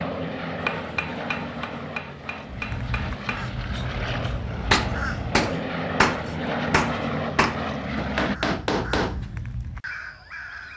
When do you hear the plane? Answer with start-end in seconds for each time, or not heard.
0.0-8.3.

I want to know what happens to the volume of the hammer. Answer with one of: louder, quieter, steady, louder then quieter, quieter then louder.
louder.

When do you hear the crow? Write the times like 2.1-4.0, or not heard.
2.5-5.5, 8.3-10.7.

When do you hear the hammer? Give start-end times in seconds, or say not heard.
0.6-9.2.